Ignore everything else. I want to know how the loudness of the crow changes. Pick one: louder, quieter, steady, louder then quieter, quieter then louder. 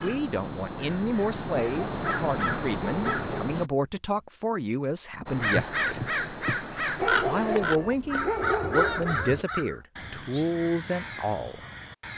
louder then quieter.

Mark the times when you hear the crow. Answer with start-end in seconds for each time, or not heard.
0.0-3.7, 5.2-12.1.